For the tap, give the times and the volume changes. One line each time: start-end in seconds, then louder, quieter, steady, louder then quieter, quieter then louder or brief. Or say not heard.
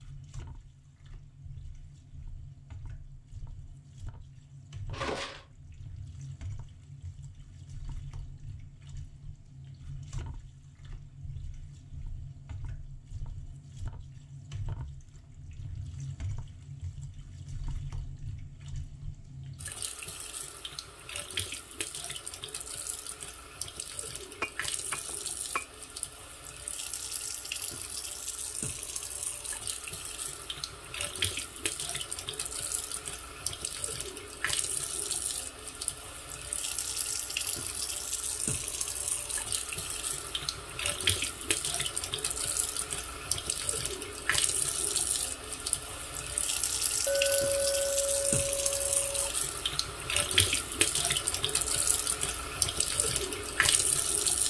0.0-54.4 louder.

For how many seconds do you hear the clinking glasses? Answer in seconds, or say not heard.
4 s.